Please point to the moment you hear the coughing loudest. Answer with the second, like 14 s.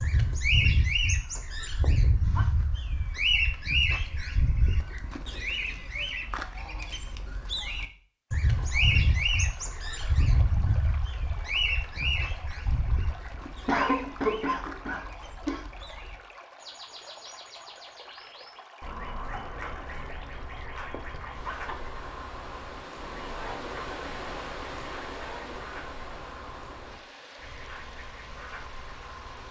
14 s.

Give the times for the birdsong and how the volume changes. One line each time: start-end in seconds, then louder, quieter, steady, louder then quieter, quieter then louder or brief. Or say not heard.
0.0-29.4 quieter.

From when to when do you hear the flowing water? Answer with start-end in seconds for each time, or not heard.
8.3-29.4.